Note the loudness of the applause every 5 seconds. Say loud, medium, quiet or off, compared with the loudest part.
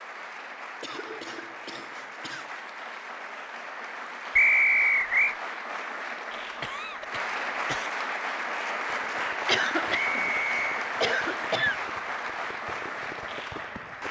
medium, loud, loud.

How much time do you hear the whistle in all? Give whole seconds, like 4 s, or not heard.
2 s.